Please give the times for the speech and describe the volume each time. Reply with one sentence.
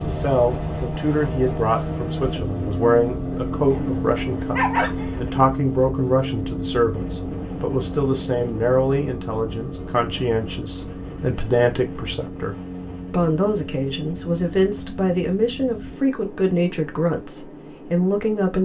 You can hear the speech from 0.0 to 18.6 s, at a steady volume.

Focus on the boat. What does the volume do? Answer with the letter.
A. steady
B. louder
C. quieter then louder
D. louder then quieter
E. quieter
E.